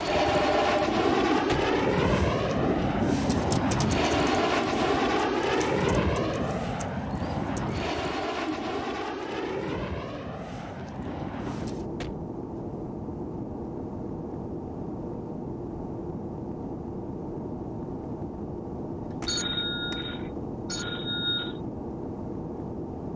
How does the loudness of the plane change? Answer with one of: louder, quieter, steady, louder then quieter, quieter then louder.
quieter.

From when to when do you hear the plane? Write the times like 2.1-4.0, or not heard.
0.0-23.1.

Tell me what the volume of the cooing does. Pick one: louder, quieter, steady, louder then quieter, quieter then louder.
quieter.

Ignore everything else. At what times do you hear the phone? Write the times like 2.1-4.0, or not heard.
0.1-0.9, 19.2-21.6.